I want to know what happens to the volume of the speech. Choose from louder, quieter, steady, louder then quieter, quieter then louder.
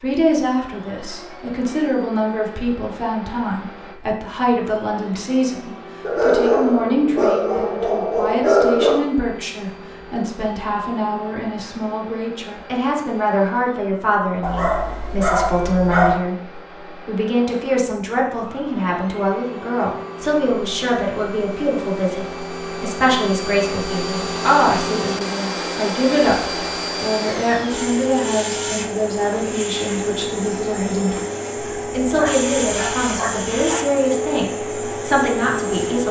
steady.